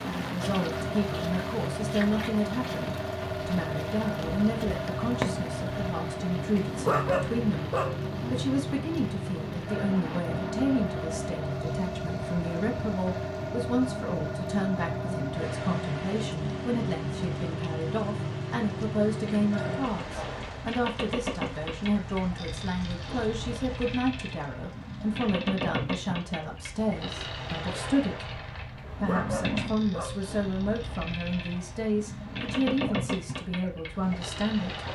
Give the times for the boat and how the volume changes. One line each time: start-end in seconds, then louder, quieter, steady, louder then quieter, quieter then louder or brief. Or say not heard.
0.0-34.9 steady.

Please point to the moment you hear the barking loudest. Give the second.
7 s.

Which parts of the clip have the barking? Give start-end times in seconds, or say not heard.
6.5-8.3, 28.8-30.3.